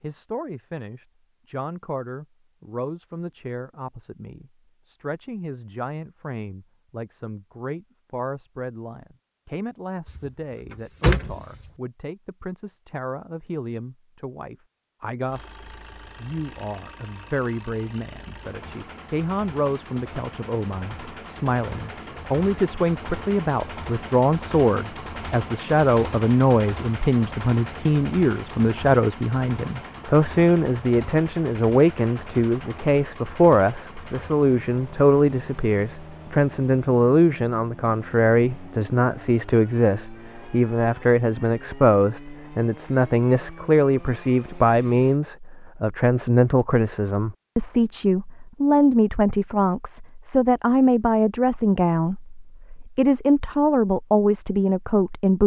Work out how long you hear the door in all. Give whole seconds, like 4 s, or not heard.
2 s.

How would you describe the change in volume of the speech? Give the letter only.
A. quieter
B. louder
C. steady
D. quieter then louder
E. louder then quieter
B.